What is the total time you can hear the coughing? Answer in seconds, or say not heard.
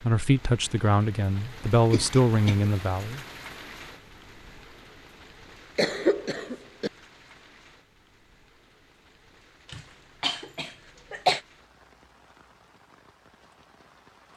4 s.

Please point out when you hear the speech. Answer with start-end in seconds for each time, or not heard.
0.0-3.2.